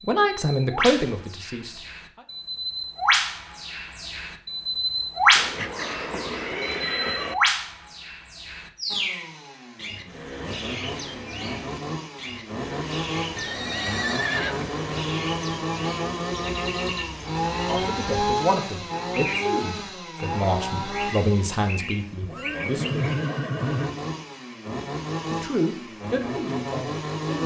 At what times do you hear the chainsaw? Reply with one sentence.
You can hear the chainsaw from 8.9 to 27.4 s.